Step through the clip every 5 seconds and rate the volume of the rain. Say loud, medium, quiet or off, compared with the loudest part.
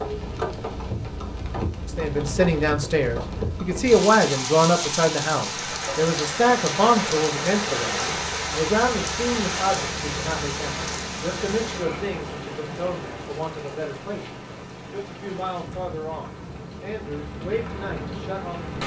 loud, loud, medium, medium.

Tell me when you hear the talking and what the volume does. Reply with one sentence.
You can hear the talking from 1.9 to 18.8 s, getting quieter.